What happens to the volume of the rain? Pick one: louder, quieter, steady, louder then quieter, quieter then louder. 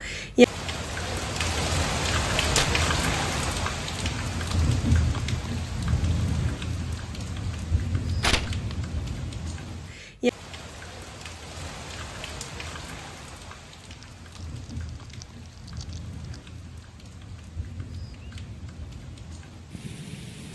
quieter.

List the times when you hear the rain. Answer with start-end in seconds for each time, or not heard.
0.0-20.5.